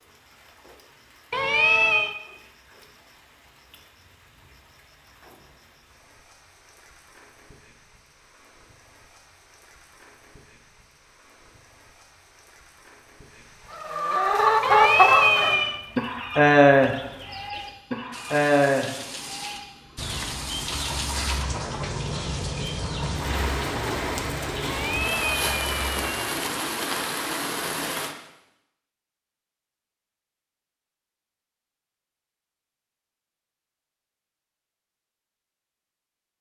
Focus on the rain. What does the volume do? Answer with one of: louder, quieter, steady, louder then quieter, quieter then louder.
louder.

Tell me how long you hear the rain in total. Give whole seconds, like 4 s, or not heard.
28 s.